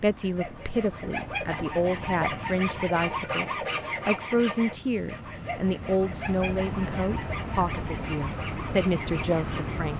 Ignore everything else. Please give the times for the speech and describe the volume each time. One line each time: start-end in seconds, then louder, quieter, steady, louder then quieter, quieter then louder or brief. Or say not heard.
0.0-9.9 steady.